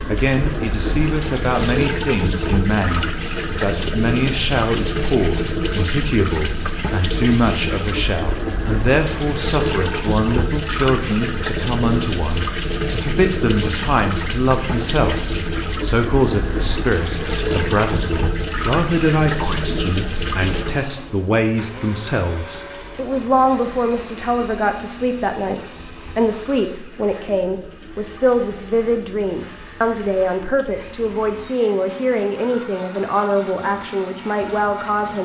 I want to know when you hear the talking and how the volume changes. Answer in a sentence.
You can hear the talking from 0.1 to 35.2 s, at a steady volume.